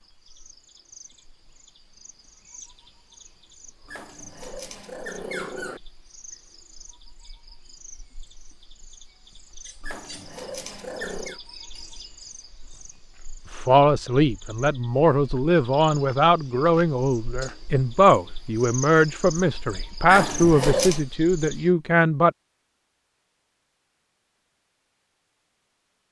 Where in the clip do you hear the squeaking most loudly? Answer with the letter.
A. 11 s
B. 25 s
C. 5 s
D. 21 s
D.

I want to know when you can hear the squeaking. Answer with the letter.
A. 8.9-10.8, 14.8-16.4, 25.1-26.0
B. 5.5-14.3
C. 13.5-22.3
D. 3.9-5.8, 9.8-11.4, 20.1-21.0
D.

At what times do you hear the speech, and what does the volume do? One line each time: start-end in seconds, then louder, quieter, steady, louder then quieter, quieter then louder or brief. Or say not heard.
13.5-22.3 steady.